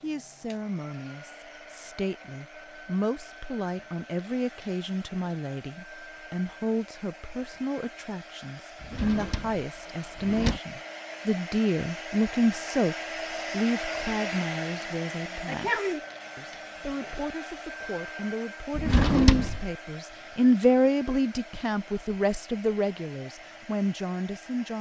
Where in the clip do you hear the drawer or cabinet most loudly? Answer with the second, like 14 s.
19 s.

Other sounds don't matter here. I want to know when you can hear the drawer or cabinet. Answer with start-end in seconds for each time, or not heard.
8.8-10.6, 18.8-19.6.